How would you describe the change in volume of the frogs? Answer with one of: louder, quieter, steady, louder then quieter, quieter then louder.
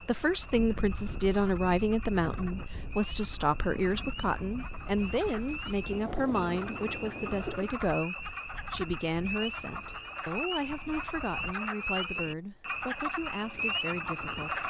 louder.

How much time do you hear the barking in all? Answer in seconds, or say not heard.
not heard.